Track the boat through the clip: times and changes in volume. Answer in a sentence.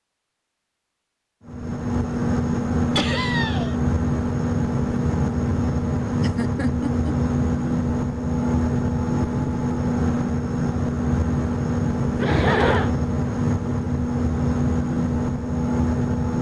You can hear the boat from 1.4 to 16.3 s, at a steady volume.